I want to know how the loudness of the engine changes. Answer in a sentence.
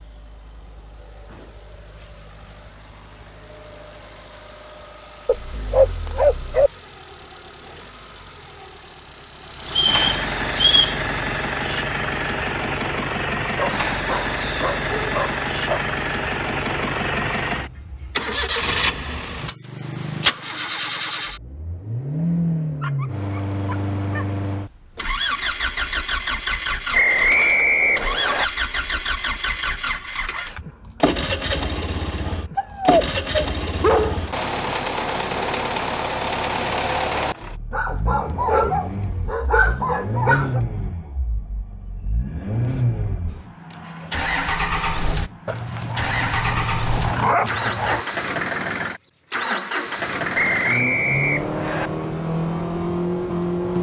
The loudness of the engine goes up.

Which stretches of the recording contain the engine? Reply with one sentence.
You can hear the engine from 0.0 to 53.7 s.